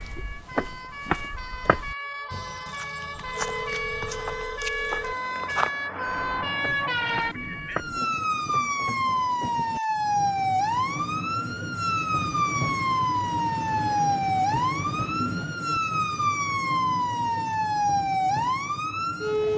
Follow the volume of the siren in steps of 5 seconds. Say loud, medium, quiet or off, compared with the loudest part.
medium, loud, loud, loud.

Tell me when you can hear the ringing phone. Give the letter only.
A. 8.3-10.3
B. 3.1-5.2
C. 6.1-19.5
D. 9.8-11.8
B.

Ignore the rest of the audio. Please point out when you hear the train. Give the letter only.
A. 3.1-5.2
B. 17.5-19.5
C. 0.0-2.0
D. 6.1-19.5
D.